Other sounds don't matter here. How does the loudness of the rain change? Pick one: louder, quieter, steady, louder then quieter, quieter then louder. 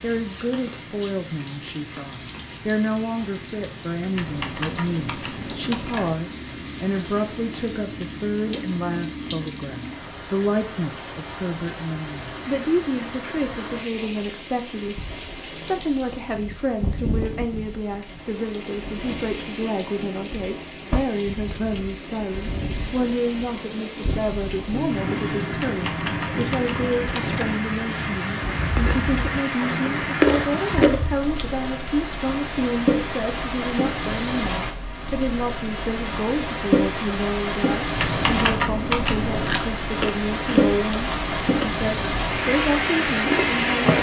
louder.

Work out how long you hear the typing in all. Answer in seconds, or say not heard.
6 s.